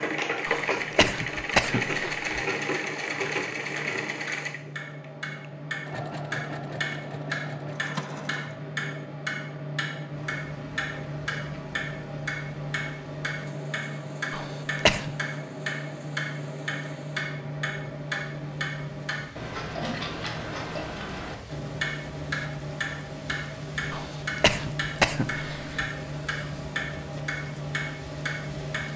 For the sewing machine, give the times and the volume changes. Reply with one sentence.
The sewing machine can be heard from 0.0 to 8.6 s, getting quieter.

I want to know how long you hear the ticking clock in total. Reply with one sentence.
The ticking clock can be heard for 29 seconds in total.